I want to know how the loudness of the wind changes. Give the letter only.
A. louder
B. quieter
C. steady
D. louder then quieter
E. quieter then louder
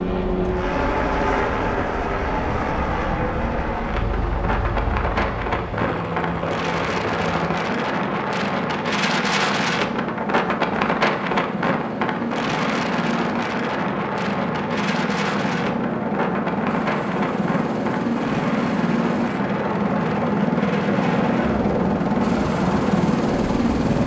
D.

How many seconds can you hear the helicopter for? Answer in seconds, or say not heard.
24 s.